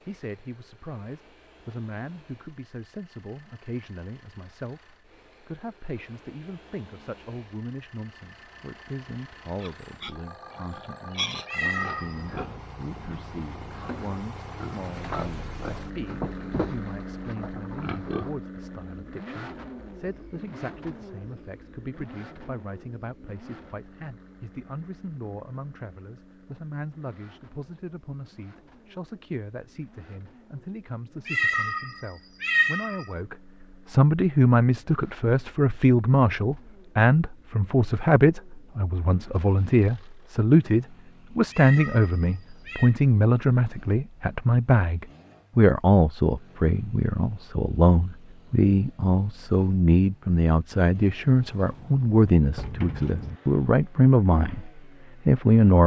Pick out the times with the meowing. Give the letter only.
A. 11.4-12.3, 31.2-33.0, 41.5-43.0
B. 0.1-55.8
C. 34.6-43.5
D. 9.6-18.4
A.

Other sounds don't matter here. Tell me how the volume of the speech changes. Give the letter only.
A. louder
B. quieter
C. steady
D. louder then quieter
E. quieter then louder
A.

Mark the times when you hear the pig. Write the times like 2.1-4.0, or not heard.
9.6-18.4.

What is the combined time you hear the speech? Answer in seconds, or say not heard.
56 s.